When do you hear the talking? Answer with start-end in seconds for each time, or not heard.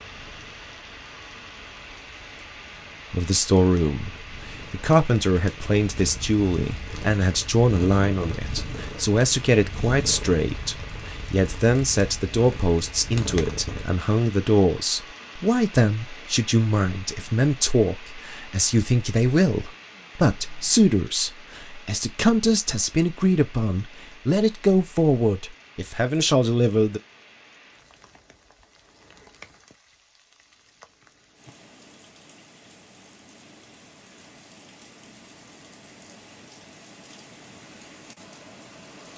3.1-27.0.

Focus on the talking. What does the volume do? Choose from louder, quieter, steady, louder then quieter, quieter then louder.
steady.